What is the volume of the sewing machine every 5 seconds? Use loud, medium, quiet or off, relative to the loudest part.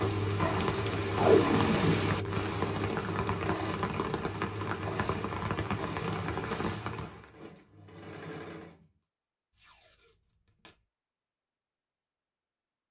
loud, medium, off.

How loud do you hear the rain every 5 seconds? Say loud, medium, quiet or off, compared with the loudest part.
loud, loud, off.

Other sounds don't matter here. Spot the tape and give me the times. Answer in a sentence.
The tape can be heard from 1.1 to 2.1 s, from 4.8 to 6.8 s and from 9.6 to 10.7 s.